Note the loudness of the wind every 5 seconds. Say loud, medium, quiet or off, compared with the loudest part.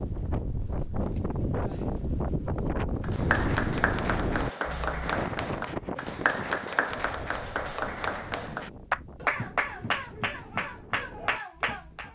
loud, medium, quiet.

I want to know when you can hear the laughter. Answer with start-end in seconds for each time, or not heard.
not heard.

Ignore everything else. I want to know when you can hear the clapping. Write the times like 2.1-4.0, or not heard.
3.0-12.1.